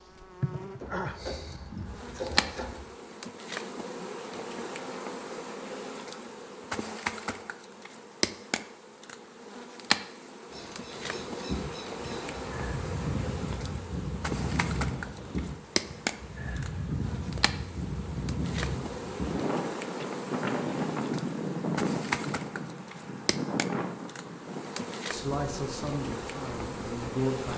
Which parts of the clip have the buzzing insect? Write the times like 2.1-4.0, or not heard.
0.0-27.5.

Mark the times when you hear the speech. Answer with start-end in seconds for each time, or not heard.
25.1-27.5.